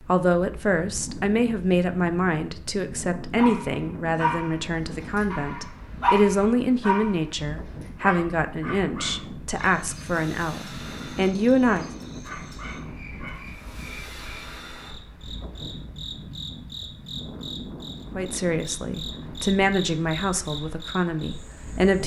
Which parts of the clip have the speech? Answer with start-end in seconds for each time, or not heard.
0.1-11.9, 18.1-22.0.